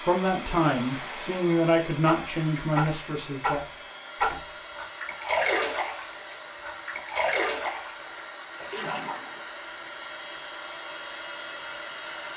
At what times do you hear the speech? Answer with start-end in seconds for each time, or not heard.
0.1-3.6.